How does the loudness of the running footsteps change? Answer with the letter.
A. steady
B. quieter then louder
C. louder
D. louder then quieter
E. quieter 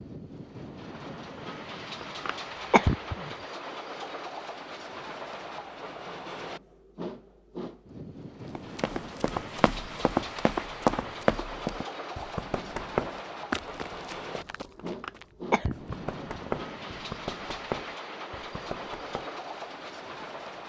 E.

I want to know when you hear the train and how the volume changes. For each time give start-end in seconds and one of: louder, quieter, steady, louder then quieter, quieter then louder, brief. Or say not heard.
0.0-20.6 steady.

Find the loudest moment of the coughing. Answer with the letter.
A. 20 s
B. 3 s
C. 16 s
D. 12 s
B.